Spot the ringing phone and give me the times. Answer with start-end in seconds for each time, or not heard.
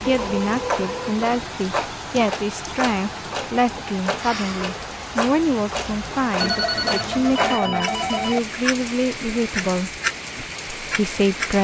0.2-1.2, 6.4-8.4.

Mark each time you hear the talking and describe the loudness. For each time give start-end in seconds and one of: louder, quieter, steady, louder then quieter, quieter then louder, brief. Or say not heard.
0.0-9.9 steady
10.8-11.5 brief.